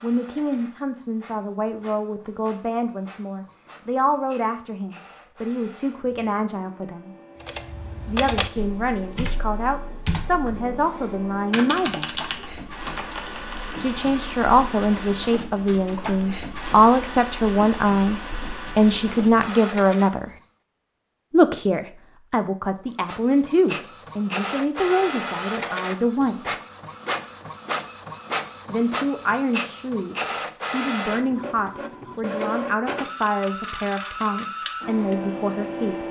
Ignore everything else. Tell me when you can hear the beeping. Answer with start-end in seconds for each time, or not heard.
not heard.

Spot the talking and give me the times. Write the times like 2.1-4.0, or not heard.
0.0-7.1, 8.1-12.2, 13.8-20.3, 21.3-26.5, 28.6-36.0.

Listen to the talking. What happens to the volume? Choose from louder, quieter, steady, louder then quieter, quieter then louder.
louder then quieter.